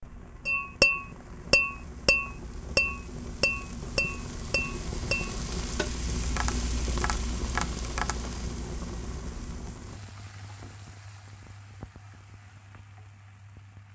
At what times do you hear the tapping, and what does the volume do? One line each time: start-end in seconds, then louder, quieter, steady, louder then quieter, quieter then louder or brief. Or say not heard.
0.5-8.2 quieter.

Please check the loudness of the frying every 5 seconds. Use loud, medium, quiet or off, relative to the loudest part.
medium, loud, quiet.